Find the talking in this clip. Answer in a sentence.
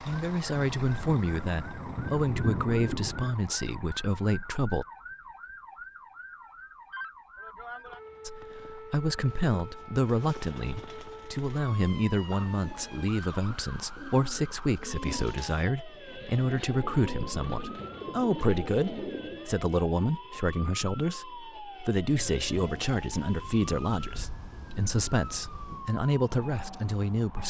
The talking can be heard from 0.0 to 4.8 s and from 8.2 to 27.4 s.